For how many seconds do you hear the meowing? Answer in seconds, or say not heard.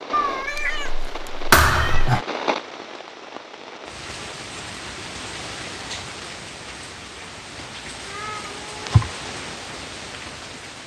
3 s.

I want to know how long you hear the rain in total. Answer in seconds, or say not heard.
11 s.